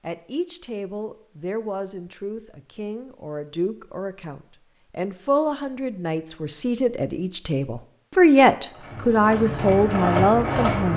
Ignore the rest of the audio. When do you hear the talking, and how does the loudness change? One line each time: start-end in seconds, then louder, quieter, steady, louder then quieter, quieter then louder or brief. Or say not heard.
0.0-10.9 louder.